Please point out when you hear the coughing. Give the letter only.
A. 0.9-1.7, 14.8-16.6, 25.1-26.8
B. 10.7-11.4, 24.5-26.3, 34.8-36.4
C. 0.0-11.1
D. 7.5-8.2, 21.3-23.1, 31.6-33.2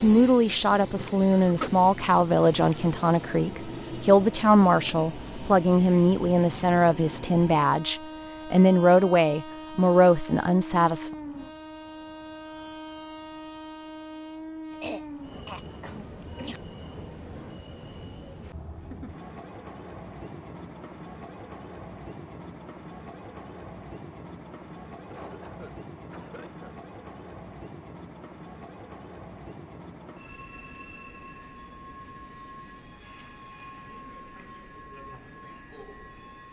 A.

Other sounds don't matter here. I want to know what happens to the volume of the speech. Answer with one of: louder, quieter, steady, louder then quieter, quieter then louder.
steady.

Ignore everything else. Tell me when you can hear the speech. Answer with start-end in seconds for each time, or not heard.
0.0-11.1.